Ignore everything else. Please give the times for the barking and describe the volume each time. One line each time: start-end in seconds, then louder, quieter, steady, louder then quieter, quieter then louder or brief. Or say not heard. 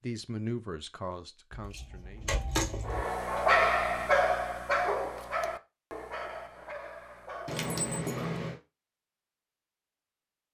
2.9-8.6 quieter.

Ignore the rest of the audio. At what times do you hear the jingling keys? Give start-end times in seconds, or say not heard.
1.5-3.0, 7.5-8.6.